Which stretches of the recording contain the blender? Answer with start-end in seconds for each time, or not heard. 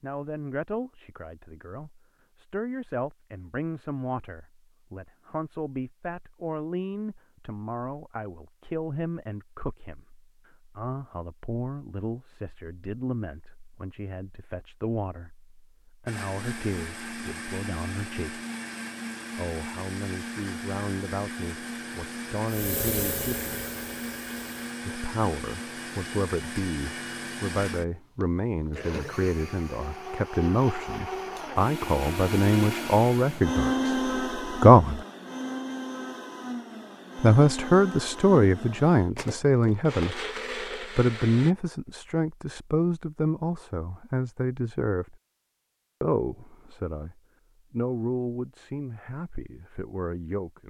16.1-41.5.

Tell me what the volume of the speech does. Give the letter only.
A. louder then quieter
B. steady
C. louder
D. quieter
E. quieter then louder
A.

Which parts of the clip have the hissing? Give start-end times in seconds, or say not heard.
22.4-24.6.